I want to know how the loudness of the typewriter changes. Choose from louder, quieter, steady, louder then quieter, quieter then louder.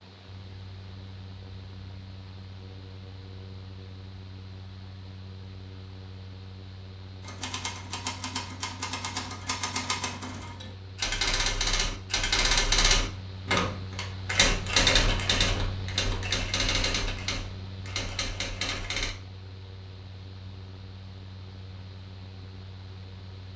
louder then quieter.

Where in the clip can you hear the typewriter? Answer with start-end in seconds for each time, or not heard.
7.2-19.1.